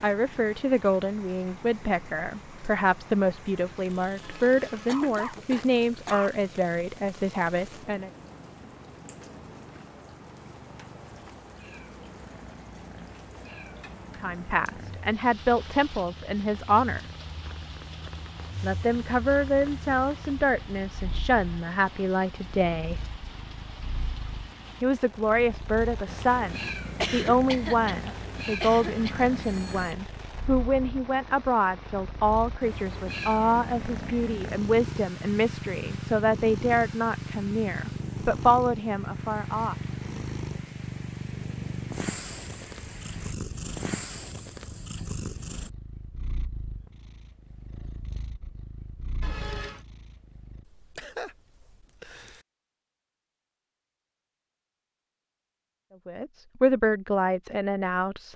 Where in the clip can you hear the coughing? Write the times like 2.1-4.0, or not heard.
4.8-6.3, 27.0-29.3, 50.6-52.4.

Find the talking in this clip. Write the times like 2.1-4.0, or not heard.
0.0-8.1, 14.2-17.0, 18.6-23.0, 24.8-39.8, 56.0-58.3.